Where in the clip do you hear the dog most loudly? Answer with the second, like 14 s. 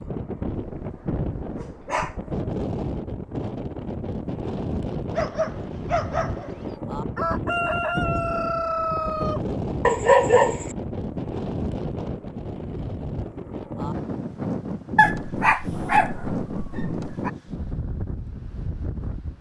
10 s.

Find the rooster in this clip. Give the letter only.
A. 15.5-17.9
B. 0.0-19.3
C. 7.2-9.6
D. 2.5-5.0
C.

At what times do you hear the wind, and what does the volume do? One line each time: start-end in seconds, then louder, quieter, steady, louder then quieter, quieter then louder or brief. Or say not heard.
0.0-19.3 steady.